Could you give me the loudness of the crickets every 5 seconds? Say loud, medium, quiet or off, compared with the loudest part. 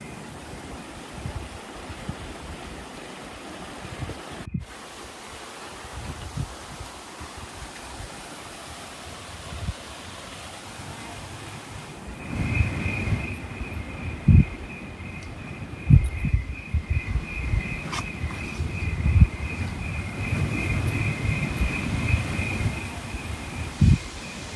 quiet, quiet, loud, loud, loud.